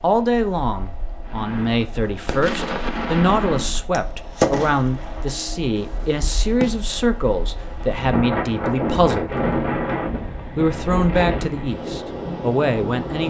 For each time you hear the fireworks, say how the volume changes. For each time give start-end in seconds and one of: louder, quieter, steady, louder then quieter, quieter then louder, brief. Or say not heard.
1.2-6.8 louder then quieter.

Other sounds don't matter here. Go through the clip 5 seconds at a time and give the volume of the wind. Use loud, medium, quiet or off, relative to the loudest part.
quiet, loud, loud.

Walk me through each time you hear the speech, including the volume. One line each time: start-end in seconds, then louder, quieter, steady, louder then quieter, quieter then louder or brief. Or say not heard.
0.0-9.4 steady
10.6-13.2 brief.